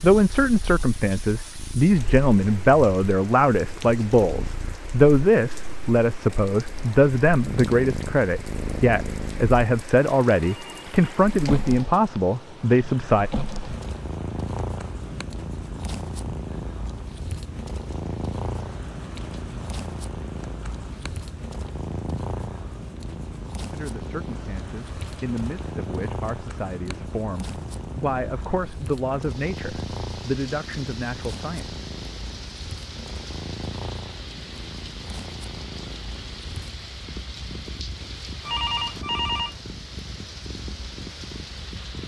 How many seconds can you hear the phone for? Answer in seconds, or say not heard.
2 s.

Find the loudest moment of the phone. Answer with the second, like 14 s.
39 s.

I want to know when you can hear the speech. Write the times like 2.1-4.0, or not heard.
0.0-13.3, 23.7-31.8.